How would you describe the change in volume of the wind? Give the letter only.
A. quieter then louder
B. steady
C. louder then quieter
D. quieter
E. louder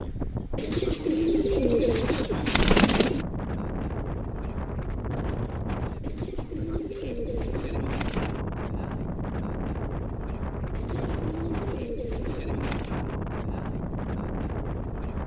B.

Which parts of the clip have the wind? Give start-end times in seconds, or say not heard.
0.0-15.2.